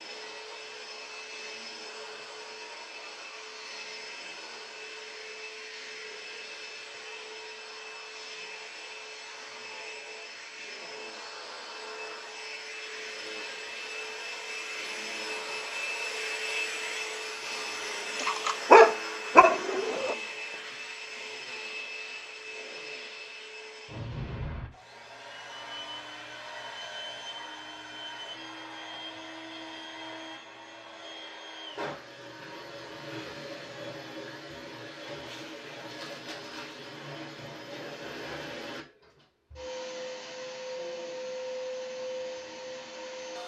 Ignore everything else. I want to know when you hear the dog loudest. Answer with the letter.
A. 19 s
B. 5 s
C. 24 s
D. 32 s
A.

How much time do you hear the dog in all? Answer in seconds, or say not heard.
2 s.